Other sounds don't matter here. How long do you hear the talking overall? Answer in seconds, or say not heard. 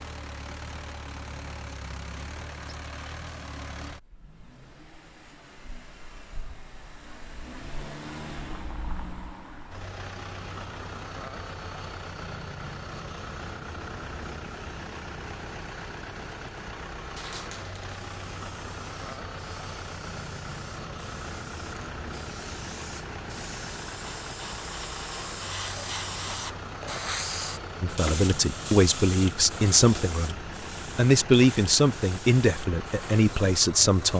6 s.